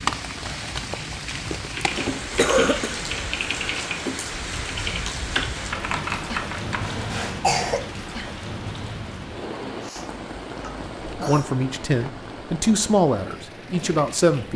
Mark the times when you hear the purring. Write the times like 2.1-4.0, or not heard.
not heard.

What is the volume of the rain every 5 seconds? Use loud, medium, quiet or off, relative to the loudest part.
loud, loud, medium.